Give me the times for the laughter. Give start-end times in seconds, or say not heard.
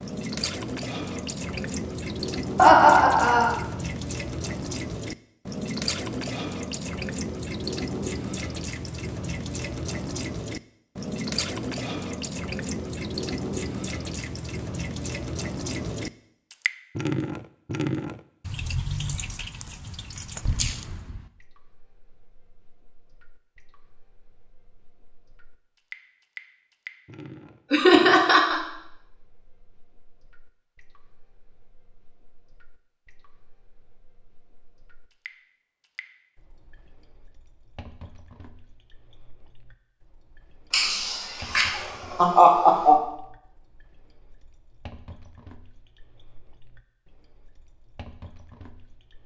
2.5-3.5, 27.7-28.6, 40.7-43.0.